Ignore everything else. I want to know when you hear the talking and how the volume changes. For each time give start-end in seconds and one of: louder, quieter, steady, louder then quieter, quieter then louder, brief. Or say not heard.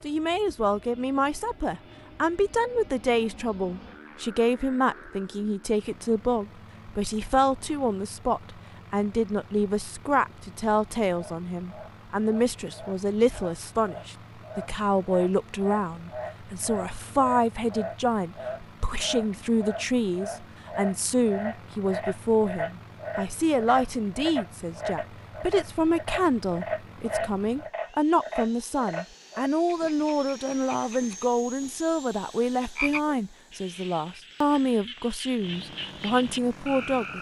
0.0-37.1 steady.